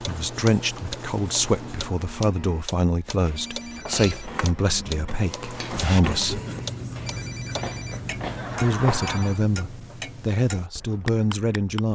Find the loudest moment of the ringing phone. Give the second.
9 s.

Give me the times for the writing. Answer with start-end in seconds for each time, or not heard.
0.0-2.1, 5.2-11.9.